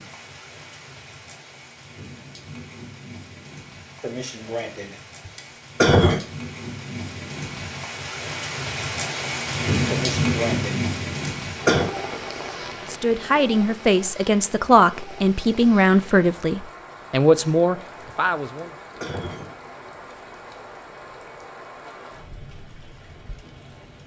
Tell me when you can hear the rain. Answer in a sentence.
You can hear the rain from 0.0 to 24.0 s.